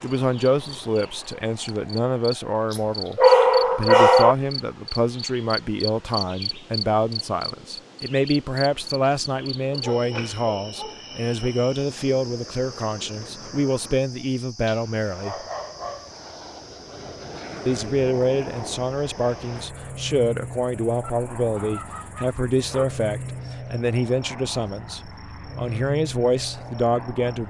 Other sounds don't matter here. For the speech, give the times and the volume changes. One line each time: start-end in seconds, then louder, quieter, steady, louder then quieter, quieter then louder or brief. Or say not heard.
0.0-15.4 steady
17.6-27.4 steady.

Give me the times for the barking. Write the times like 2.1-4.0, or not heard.
2.7-4.3, 9.7-11.6, 14.7-16.1, 21.0-22.9.